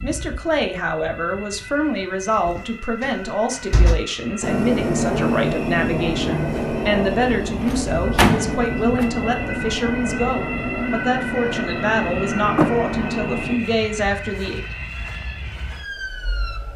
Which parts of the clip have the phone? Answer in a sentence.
You can't hear the phone here.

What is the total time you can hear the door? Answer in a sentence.
You can hear the door for 4 seconds altogether.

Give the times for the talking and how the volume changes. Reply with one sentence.
The talking can be heard from 0.0 to 14.6 s, at a steady volume.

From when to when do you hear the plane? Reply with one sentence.
You can hear the plane from 4.4 to 13.6 s.